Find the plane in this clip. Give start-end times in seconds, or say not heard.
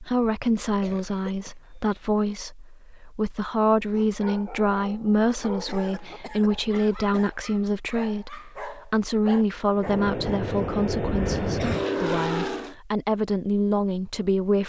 9.8-12.8.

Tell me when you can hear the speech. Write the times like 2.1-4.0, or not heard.
0.0-14.6.